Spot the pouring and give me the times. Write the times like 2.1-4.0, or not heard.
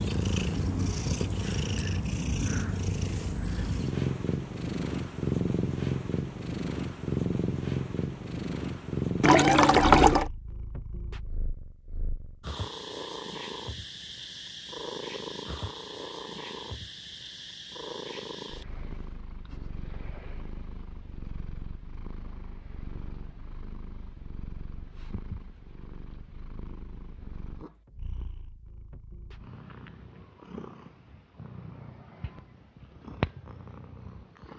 9.2-10.3.